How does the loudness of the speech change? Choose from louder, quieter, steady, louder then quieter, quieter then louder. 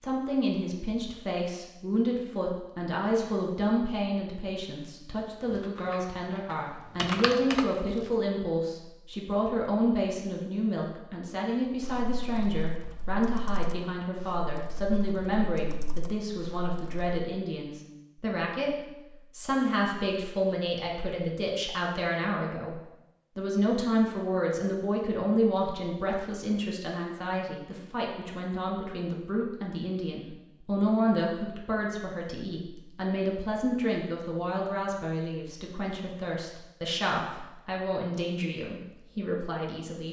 steady.